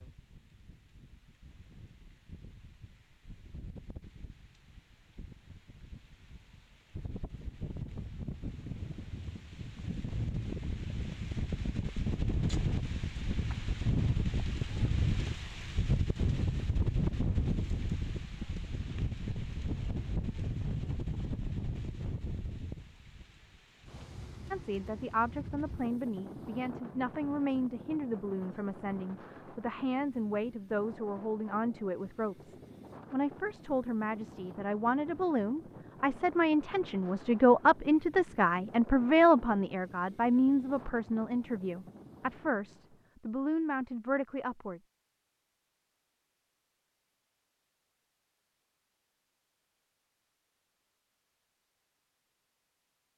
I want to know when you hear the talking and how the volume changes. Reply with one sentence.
You can hear the talking from 24.5 to 44.8 s, getting louder then quieter.